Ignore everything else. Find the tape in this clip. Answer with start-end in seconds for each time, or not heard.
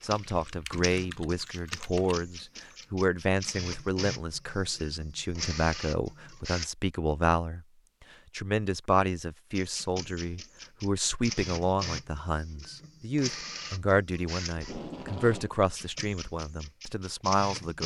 14.6-15.6.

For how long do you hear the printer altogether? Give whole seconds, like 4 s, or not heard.
15 s.